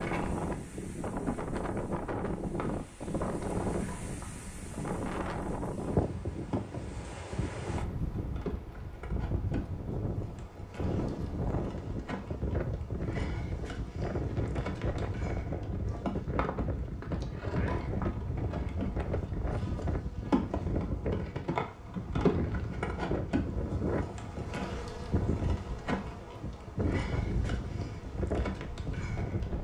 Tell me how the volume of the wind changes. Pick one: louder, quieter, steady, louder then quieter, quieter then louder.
steady.